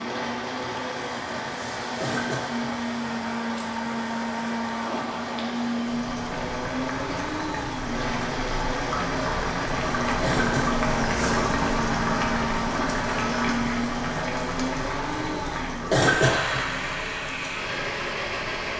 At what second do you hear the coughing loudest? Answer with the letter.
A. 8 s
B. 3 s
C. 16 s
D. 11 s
C.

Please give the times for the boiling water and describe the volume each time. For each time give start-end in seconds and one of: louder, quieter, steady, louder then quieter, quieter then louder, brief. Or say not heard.
0.0-18.7 louder then quieter.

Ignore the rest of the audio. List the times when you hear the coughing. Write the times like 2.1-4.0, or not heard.
1.9-2.7, 10.2-10.8, 15.8-16.7.